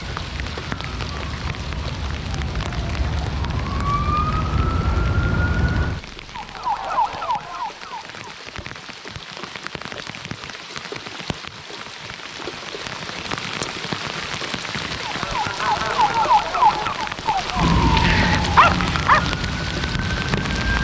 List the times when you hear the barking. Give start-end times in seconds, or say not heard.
17.8-19.3.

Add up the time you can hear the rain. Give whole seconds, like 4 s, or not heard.
21 s.